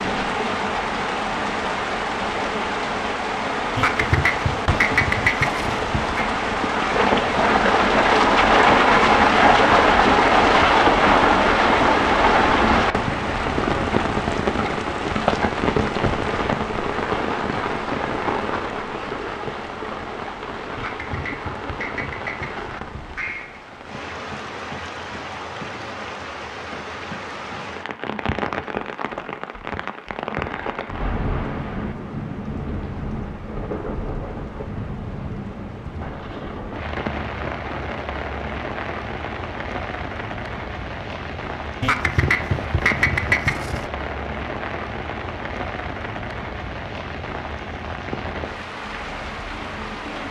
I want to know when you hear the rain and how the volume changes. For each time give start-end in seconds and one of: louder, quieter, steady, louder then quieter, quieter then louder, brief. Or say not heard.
0.0-50.2 quieter.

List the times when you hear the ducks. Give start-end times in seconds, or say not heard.
3.8-6.2, 20.8-23.6, 41.8-43.9.